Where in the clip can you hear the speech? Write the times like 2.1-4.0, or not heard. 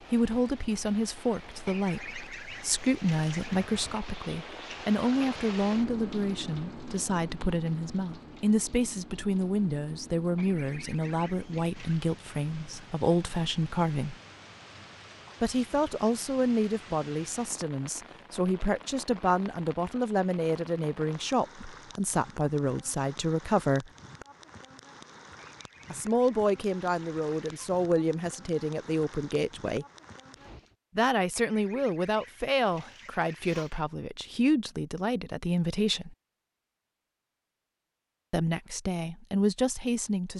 0.1-14.2, 15.4-23.9, 25.9-29.9, 30.9-36.1, 38.3-40.3.